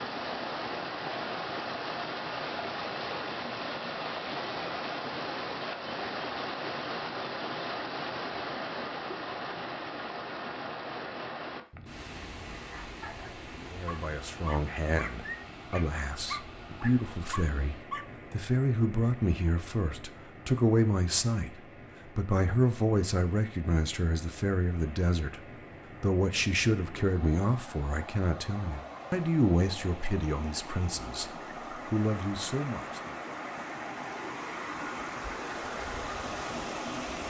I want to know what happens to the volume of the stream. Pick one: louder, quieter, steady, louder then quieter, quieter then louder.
quieter then louder.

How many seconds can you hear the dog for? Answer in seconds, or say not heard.
5 s.